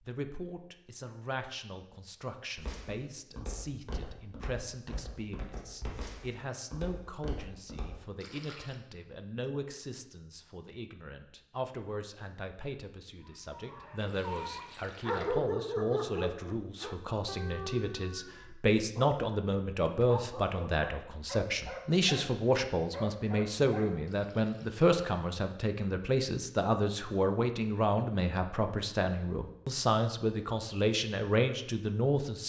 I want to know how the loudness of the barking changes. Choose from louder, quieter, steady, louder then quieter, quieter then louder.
louder then quieter.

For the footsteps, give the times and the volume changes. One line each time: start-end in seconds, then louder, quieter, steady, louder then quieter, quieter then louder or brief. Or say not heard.
2.5-8.0 steady.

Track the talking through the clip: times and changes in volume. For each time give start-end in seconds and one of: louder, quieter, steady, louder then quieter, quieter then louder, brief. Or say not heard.
0.0-32.4 louder.